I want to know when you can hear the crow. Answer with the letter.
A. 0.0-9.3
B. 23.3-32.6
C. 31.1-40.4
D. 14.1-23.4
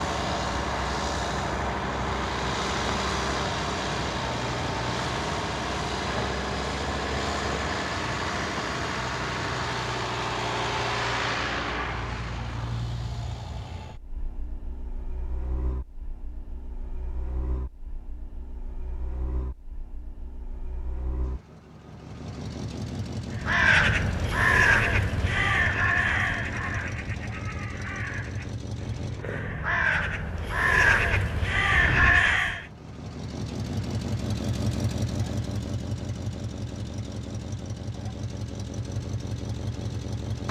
B.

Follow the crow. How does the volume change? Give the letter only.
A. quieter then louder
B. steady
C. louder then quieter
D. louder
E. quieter
A.